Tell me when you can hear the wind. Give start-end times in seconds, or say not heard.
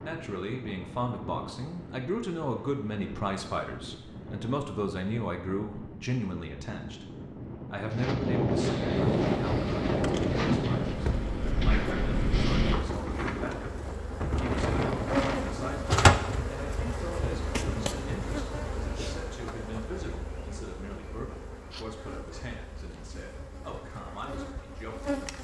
0.0-16.0.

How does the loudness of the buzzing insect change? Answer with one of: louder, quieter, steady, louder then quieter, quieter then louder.
louder then quieter.